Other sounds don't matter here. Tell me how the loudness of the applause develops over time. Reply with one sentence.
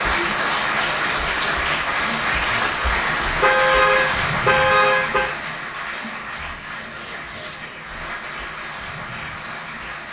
The volume of the applause goes down.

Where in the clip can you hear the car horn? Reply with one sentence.
The car horn can be heard from 3.4 to 5.3 s.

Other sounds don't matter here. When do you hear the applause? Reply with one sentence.
The applause can be heard from 0.0 to 10.0 s.